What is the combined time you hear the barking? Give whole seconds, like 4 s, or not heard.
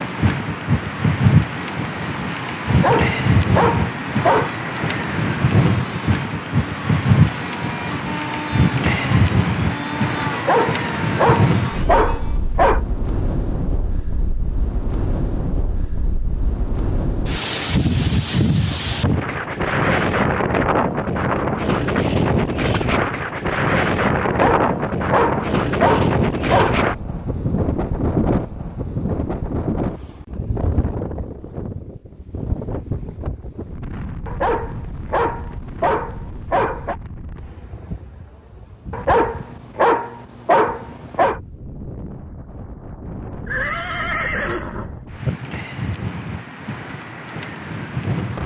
12 s.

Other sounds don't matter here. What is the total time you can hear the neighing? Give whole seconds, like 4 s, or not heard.
2 s.